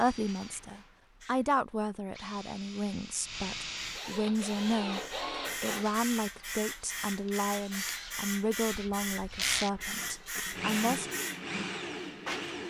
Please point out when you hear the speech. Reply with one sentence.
You can hear the speech from 0.0 to 5.0 s and from 5.6 to 11.1 s.